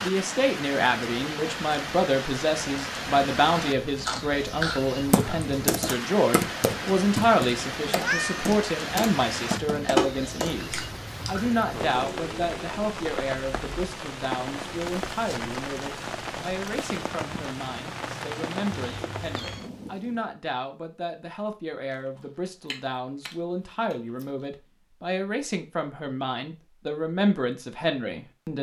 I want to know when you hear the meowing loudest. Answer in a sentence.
The volume of the meowing peaks at 8 seconds.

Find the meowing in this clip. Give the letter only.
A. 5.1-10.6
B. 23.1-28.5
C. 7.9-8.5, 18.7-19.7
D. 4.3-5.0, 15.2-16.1
C.